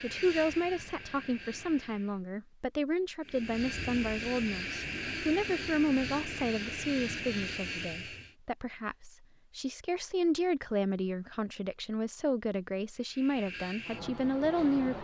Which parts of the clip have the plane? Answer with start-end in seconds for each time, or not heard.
0.0-2.2, 3.2-8.3, 12.9-14.9.